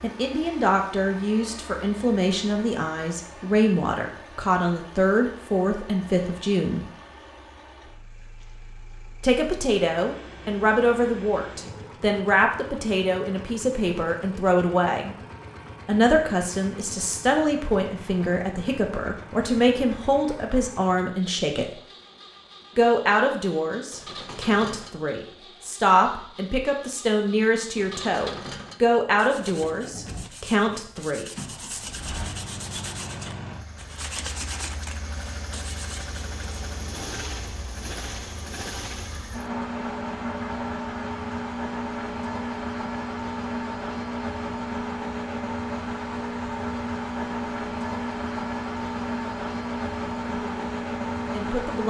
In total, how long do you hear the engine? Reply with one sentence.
The engine can be heard for 52 seconds in total.